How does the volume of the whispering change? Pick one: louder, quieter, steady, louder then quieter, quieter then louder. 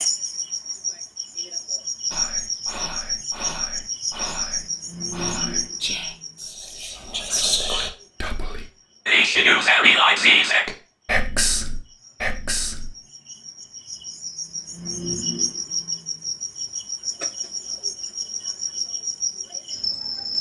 louder then quieter.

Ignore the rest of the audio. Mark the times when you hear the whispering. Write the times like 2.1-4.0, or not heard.
2.1-12.9.